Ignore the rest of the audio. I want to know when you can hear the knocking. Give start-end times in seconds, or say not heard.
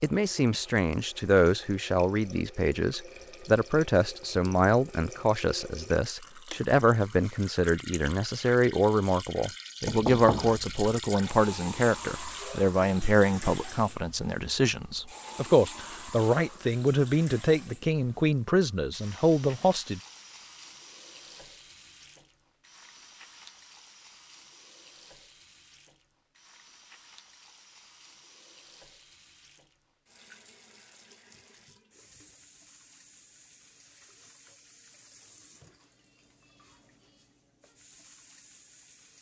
9.8-10.9.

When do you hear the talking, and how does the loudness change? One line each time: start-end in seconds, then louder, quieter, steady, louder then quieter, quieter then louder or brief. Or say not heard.
0.0-20.0 steady.